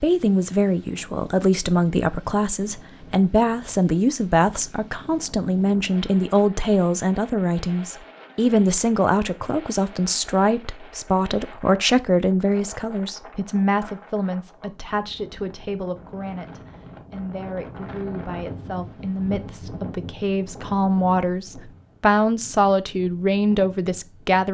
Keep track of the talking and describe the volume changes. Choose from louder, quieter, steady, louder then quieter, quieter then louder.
quieter then louder.